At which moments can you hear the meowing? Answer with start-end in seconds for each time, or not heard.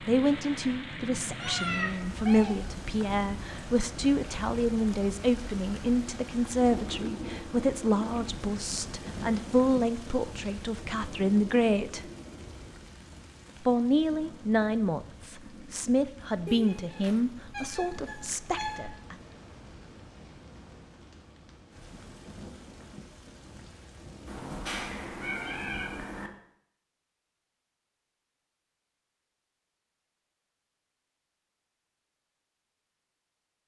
1.4-2.5, 16.4-18.8, 24.2-26.3.